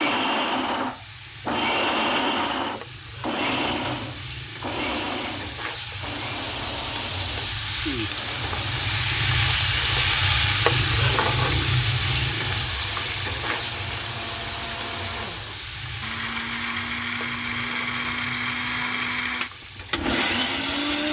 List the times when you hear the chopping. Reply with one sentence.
You can't hear the chopping here.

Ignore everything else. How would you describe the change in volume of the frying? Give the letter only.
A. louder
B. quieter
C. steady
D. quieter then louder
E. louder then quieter
E.